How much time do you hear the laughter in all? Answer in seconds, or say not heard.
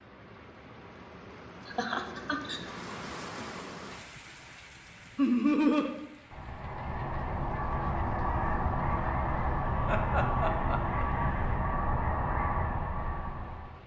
3 s.